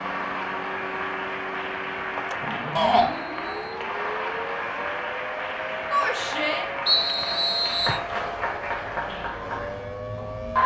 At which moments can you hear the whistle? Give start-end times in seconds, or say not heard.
3.0-3.9, 6.8-8.0.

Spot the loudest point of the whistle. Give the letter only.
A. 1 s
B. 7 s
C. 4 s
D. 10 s
B.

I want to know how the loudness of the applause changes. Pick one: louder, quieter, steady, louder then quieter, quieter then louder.
steady.